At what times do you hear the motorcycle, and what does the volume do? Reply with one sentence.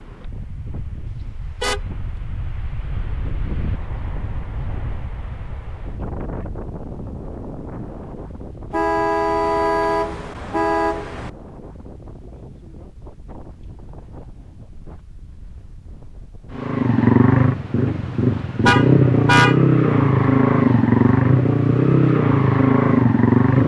The motorcycle can be heard from 16.5 to 23.6 s, at a steady volume.